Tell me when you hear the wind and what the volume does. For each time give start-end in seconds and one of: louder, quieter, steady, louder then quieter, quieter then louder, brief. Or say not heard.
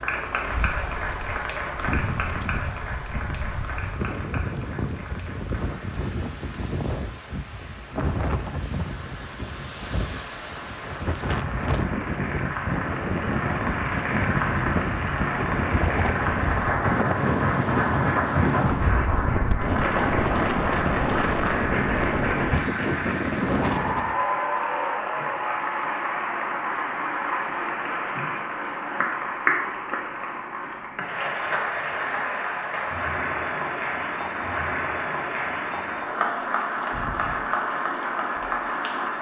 0.0-24.2 louder.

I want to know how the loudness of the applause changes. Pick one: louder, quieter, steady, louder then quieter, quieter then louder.
louder.